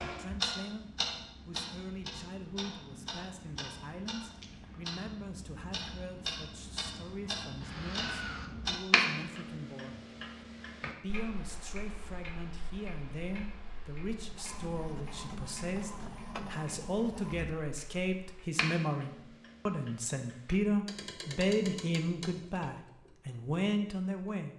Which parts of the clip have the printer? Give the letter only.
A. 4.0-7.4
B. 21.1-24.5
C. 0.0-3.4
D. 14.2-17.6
D.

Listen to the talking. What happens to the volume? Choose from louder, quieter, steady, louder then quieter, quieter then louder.
louder.